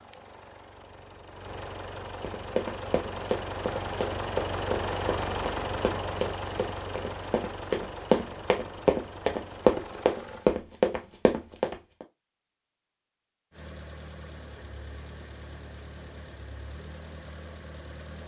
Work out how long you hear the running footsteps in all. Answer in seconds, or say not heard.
10 s.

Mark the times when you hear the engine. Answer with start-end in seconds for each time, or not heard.
0.0-10.5, 13.5-18.2.